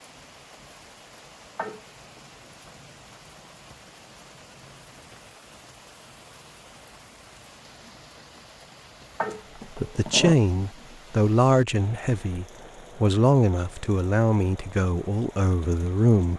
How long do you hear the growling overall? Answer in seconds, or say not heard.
2 s.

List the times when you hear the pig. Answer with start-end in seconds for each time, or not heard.
not heard.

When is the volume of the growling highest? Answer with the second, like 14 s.
10 s.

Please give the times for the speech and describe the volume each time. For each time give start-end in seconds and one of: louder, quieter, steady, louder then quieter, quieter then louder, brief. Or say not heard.
9.8-16.3 quieter.